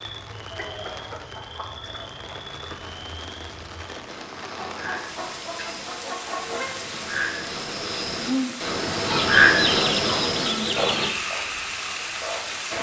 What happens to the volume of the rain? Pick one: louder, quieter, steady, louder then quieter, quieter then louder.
louder.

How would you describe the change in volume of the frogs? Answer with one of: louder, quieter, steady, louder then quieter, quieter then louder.
louder then quieter.